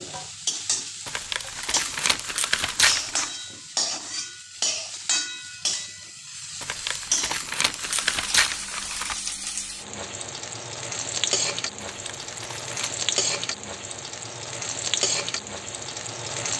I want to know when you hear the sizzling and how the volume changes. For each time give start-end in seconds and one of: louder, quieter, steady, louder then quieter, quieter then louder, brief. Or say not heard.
0.0-16.5 steady.